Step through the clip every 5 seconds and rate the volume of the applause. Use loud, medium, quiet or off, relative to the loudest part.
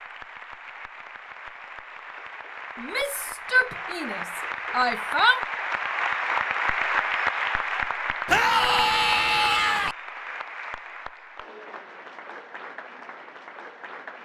medium, loud, quiet.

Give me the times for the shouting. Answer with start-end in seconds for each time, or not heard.
2.8-5.5, 8.2-9.9.